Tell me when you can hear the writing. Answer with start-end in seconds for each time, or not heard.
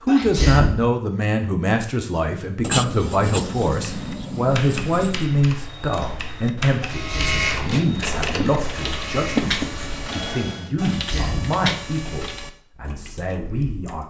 2.6-5.2, 7.9-10.2.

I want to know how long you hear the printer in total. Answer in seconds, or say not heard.
4 s.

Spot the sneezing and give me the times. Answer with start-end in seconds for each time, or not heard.
0.1-0.8, 6.8-7.6, 10.8-11.6.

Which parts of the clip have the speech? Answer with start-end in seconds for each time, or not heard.
0.1-14.0.